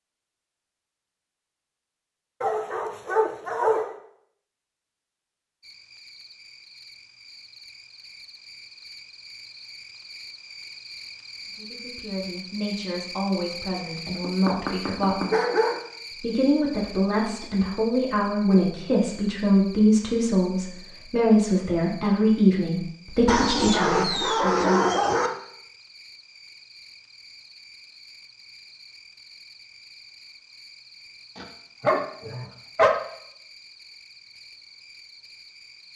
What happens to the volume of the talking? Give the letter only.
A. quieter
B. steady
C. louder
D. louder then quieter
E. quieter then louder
C.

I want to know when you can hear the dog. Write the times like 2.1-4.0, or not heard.
2.4-3.9, 14.2-15.8, 23.2-25.3, 31.4-32.9.